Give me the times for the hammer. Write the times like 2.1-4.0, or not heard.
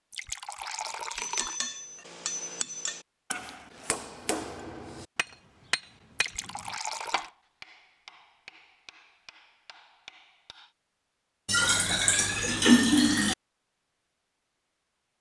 1.1-10.8.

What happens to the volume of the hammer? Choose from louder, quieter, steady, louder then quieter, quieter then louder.
quieter.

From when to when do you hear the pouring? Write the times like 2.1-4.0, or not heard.
0.1-1.6, 6.2-7.3, 11.4-13.3.